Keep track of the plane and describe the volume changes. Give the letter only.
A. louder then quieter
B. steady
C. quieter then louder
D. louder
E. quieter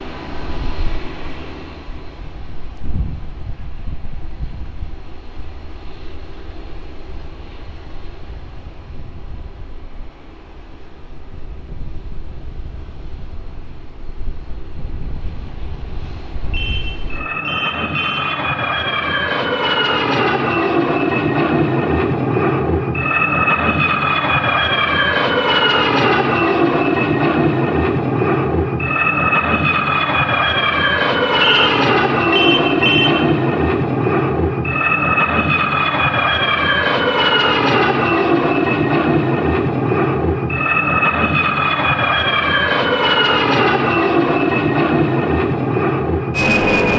D.